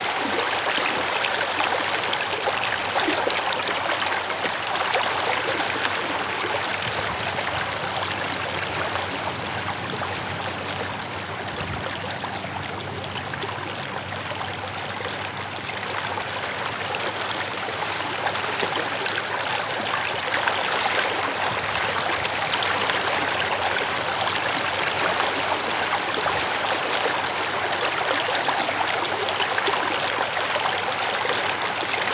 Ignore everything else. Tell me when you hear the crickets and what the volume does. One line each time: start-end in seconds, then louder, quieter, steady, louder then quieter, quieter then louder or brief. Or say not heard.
0.0-32.1 louder then quieter.